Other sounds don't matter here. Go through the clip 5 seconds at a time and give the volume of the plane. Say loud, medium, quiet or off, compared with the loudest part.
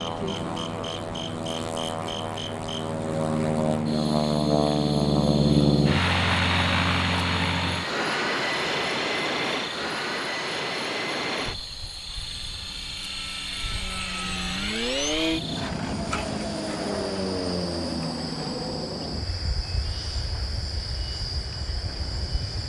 loud, loud, medium, medium, quiet.